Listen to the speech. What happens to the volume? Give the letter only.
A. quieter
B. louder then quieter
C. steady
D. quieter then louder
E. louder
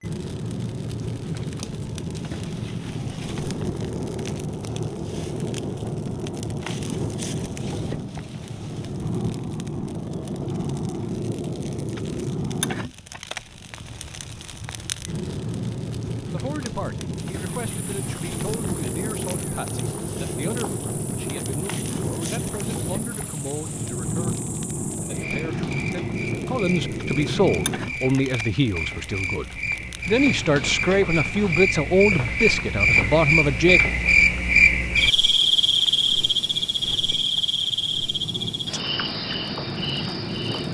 E.